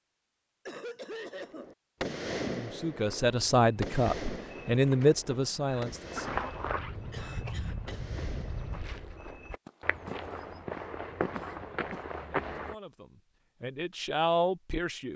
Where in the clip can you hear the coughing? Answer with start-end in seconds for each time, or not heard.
0.7-1.7, 7.1-8.1, 11.3-12.1.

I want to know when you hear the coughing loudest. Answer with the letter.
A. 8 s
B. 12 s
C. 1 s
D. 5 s
C.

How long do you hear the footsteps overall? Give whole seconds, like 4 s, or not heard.
10 s.